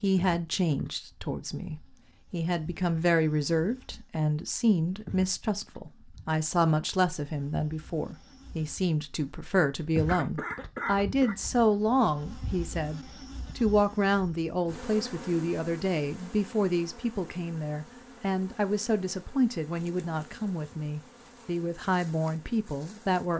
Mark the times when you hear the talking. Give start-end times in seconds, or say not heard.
0.0-23.3.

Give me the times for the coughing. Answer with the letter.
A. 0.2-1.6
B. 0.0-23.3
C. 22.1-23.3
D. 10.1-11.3
D.